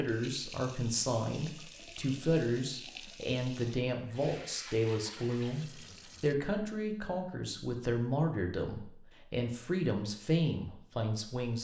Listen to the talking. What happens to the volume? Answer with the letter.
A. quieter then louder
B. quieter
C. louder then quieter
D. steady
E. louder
D.